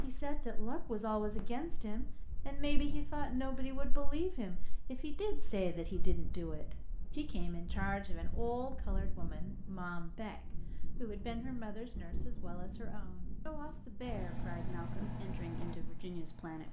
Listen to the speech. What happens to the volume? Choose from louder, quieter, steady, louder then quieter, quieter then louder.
quieter.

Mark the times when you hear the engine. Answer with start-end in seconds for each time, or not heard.
14.0-16.6.